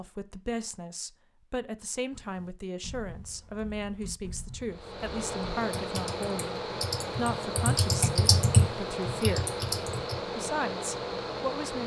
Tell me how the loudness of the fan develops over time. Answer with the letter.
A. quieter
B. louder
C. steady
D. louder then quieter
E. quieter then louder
C.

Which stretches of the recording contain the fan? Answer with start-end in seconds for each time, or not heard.
4.7-11.8.